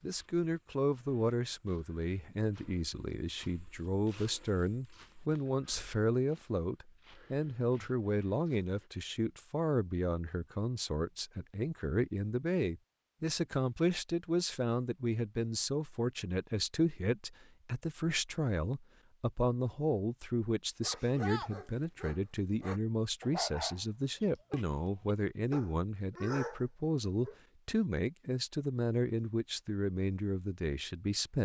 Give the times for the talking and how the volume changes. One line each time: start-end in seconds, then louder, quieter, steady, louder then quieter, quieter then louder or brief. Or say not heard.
0.0-31.4 steady.